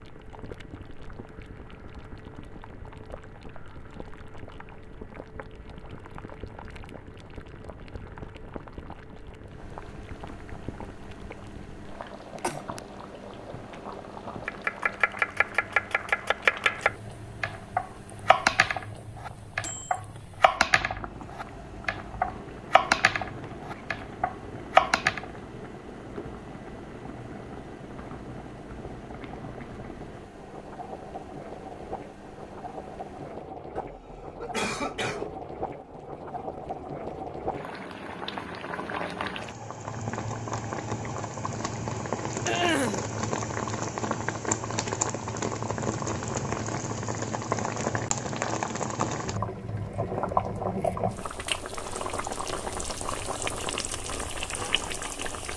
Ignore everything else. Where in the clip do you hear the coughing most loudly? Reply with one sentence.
The loudest moment of the coughing is at 43 seconds.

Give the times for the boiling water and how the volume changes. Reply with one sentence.
You can hear the boiling water from 0.0 to 55.5 s, getting louder.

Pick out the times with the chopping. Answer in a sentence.
You can hear the chopping from 14.4 to 25.2 s.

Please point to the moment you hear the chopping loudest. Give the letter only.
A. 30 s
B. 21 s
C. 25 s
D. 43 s
C.